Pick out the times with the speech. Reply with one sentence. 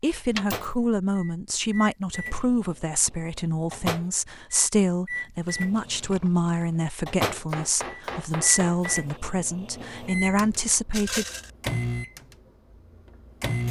The speech can be heard from 0.0 to 11.2 s.